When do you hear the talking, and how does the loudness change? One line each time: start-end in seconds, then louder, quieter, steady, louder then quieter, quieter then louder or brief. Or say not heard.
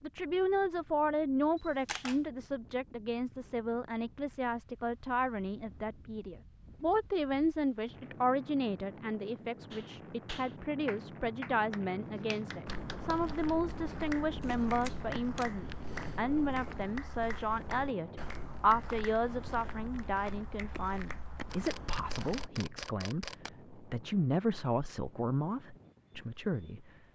0.0-26.9 steady.